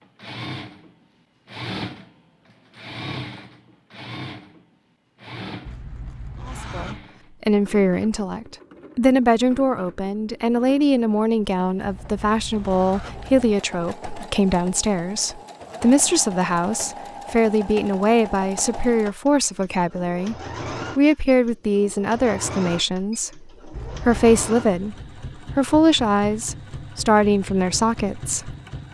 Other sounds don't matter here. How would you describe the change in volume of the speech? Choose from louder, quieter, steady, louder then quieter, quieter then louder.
steady.